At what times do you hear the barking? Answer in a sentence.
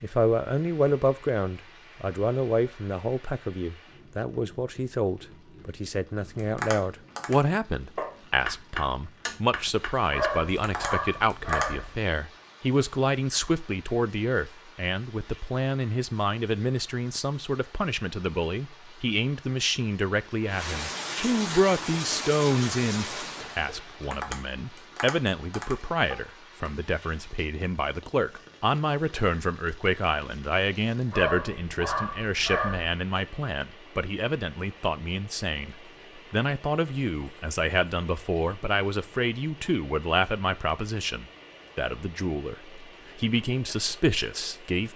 The barking can be heard from 10.1 to 12.0 s and from 31.1 to 33.0 s.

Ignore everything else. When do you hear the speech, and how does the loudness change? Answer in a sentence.
You can hear the speech from 0.0 to 44.9 s, at a steady volume.